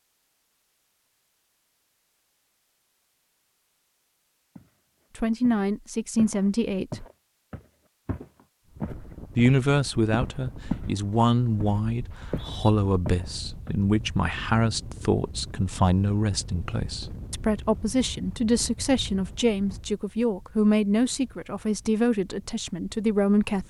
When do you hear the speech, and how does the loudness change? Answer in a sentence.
You can hear the speech briefly from 5.2 to 7.0 s; and from 9.3 to 23.6 s, at a steady volume.